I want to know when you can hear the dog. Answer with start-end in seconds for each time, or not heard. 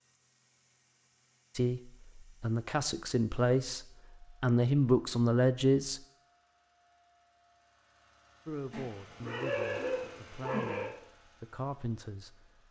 8.7-10.9.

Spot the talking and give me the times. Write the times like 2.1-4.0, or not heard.
1.6-6.0, 8.4-12.3.